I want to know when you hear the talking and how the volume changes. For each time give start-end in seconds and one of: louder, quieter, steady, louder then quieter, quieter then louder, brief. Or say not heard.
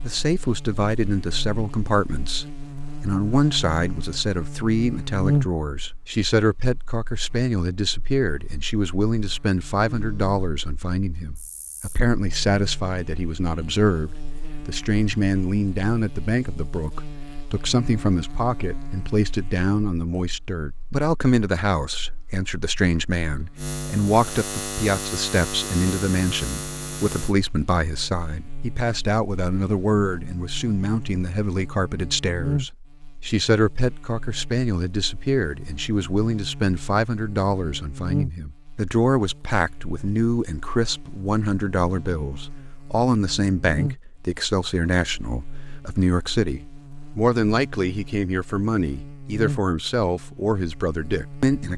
0.0-51.7 steady.